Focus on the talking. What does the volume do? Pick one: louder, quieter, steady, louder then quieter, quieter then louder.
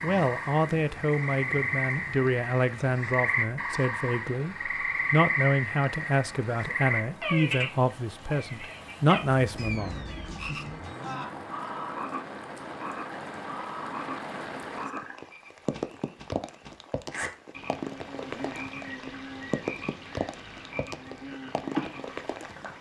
steady.